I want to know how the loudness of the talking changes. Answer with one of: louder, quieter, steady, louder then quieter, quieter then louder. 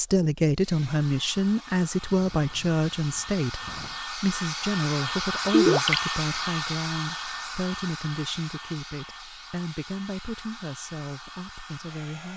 quieter.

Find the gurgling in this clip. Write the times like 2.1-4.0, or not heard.
5.5-6.0.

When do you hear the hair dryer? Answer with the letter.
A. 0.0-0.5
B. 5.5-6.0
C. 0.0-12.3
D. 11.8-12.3
C.